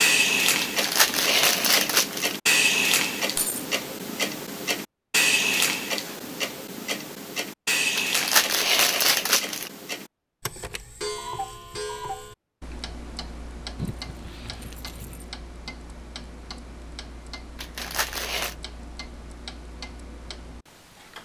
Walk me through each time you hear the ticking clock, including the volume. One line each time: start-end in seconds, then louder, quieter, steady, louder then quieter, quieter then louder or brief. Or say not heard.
0.0-21.1 quieter.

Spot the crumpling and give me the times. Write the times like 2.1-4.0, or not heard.
0.6-2.4, 8.0-9.7, 17.6-18.6.